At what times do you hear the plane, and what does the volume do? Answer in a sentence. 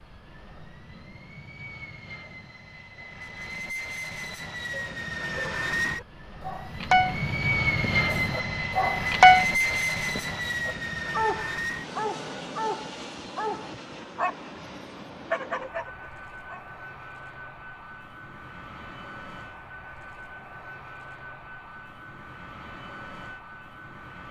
The plane can be heard from 0.0 to 24.2 s, getting louder then quieter.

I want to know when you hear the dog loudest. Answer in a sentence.
The volume of the dog peaks at 9 seconds.